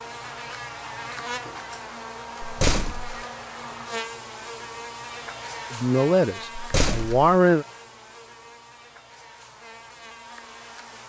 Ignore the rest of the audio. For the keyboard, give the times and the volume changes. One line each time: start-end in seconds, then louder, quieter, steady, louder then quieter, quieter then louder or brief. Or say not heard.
not heard.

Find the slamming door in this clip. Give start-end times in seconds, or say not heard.
2.4-3.2, 6.5-7.2.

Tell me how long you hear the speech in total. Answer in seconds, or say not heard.
2 s.